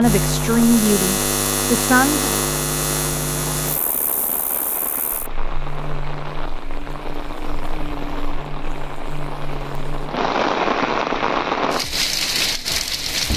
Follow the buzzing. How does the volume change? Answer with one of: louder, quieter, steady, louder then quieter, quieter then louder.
quieter.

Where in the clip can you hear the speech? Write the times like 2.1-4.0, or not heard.
0.0-2.5.